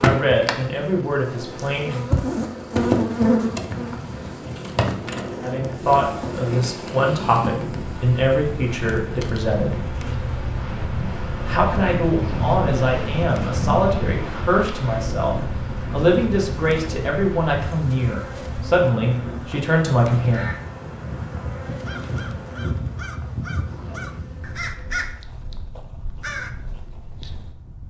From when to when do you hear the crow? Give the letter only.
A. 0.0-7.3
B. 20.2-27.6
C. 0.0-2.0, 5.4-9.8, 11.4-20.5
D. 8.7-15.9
B.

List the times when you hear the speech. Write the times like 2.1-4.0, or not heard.
0.0-2.0, 5.4-9.8, 11.4-20.5.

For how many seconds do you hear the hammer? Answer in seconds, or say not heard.
not heard.